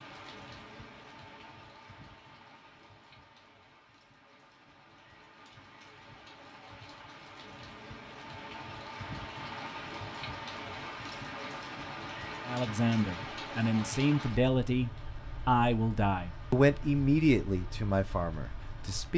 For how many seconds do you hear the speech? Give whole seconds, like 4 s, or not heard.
7 s.